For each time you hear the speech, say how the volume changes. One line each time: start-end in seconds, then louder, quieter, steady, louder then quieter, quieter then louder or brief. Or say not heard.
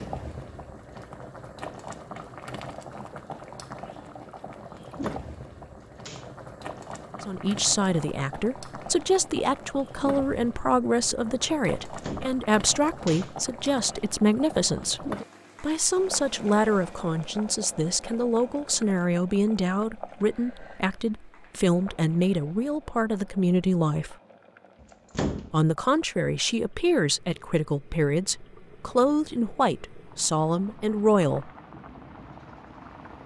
7.2-24.1 steady
25.5-31.5 steady.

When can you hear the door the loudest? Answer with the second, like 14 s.
25 s.